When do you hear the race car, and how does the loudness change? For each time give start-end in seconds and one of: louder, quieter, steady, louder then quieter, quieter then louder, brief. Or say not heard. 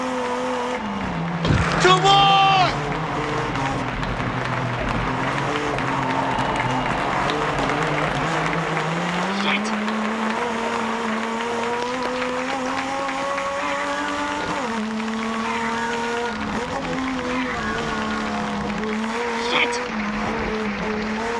0.0-21.3 steady.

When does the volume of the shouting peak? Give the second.
2 s.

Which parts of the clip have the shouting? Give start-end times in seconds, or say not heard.
1.4-2.8, 9.3-9.8, 19.4-19.8.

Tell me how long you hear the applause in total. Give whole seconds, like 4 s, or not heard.
21 s.